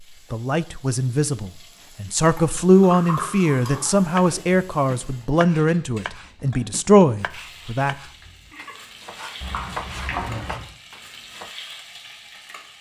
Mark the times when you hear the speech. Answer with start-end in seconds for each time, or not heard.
0.3-8.0.